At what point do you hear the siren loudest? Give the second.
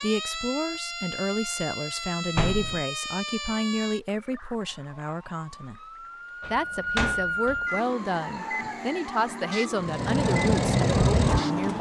7 s.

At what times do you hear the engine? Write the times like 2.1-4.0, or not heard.
9.8-11.7.